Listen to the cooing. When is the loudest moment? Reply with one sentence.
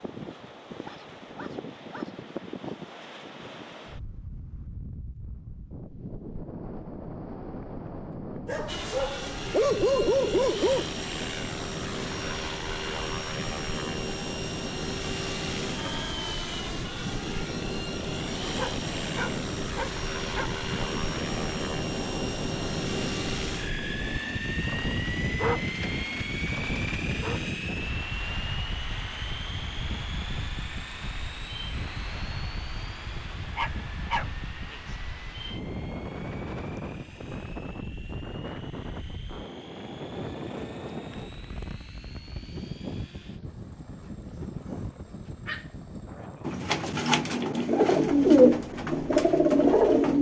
The loudest moment of the cooing is at 48 seconds.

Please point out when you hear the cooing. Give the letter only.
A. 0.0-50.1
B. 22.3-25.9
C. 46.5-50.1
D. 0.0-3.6
C.